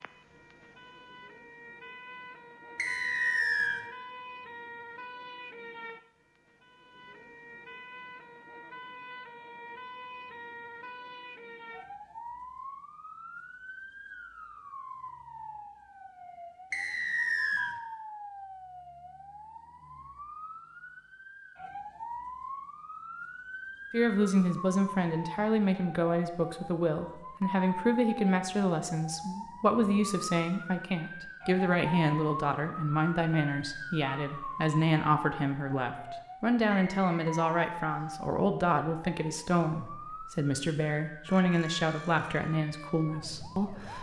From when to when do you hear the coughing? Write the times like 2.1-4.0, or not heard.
not heard.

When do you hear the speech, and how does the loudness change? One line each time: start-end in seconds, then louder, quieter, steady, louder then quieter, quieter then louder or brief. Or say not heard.
23.9-43.9 steady.